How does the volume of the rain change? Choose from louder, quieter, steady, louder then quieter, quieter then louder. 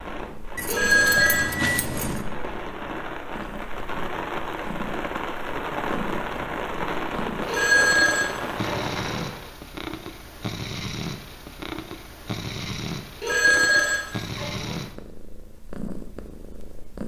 louder.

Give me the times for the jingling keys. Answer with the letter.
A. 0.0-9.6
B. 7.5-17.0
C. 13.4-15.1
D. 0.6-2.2
D.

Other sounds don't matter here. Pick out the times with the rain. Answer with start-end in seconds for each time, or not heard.
0.0-9.6.